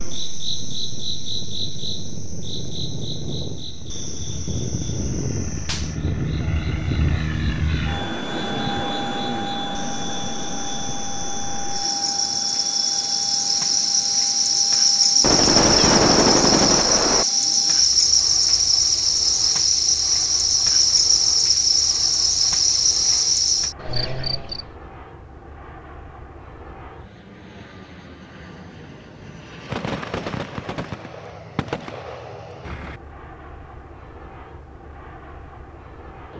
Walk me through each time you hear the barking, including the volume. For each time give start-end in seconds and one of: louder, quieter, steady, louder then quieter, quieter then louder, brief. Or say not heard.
not heard.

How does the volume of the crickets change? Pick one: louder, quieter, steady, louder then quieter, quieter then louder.
quieter then louder.